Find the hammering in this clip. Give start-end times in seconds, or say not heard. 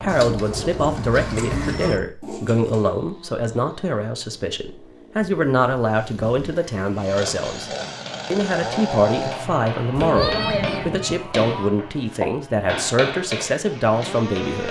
8.1-14.6.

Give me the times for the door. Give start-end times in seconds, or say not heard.
not heard.